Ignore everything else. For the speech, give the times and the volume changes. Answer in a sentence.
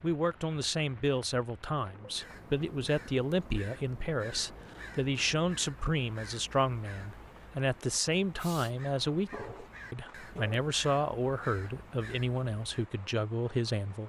The speech can be heard from 0.0 to 14.0 s, at a steady volume.